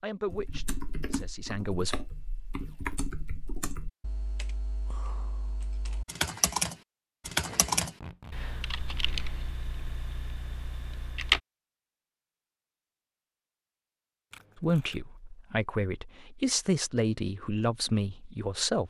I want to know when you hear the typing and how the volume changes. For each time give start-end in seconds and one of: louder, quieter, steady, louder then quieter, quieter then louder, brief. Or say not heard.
0.2-11.4 louder then quieter.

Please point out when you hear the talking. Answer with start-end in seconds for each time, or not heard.
0.0-1.9, 14.6-18.8.